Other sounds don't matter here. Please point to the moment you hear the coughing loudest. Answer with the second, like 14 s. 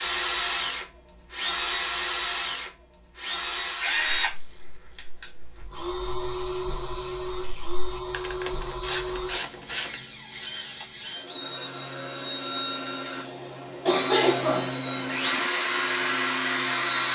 14 s.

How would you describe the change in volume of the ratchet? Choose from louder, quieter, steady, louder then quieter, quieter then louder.
louder.